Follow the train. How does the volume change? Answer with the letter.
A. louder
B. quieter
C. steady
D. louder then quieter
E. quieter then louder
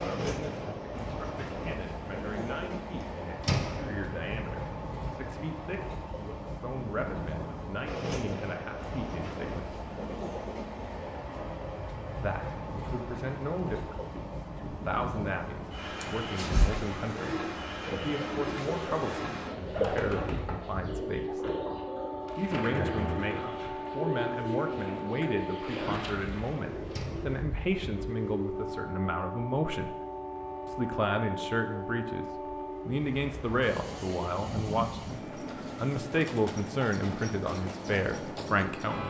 C.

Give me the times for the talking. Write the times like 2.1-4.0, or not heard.
0.0-9.8, 12.2-21.4, 22.4-29.9, 30.6-32.2, 32.9-39.0.